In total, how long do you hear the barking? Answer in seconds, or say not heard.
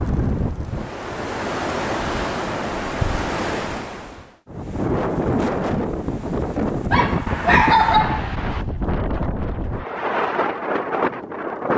2 s.